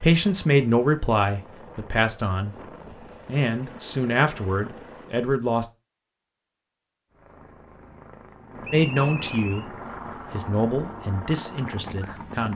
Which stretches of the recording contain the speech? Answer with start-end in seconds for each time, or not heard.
0.0-5.7, 8.7-12.5.